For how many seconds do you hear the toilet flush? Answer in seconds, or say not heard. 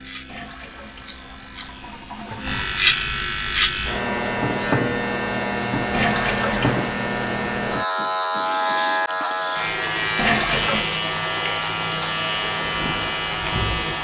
4 s.